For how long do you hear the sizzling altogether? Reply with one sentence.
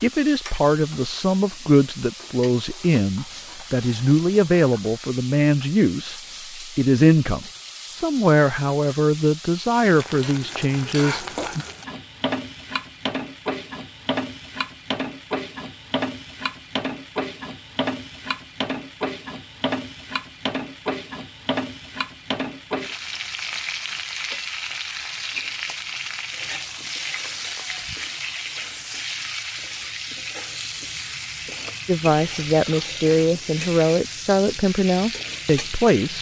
You can hear the sizzling for 36 seconds altogether.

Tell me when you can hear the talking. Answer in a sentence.
The talking can be heard from 0.0 to 11.7 s and from 31.9 to 36.1 s.